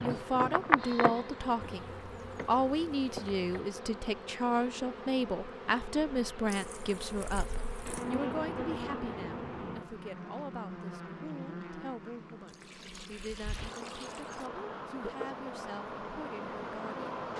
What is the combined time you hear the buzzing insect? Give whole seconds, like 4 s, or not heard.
17 s.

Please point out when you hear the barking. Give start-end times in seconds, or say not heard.
not heard.